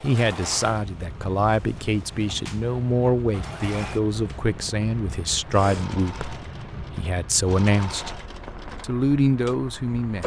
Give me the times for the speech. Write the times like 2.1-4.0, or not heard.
0.0-8.1, 8.8-10.2.